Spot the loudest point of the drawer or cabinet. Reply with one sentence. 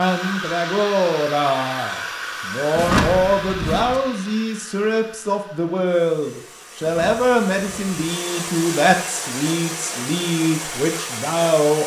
The volume of the drawer or cabinet peaks at 3 seconds.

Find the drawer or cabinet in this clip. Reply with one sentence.
The drawer or cabinet can be heard from 2.8 to 4.0 s and from 6.8 to 8.0 s.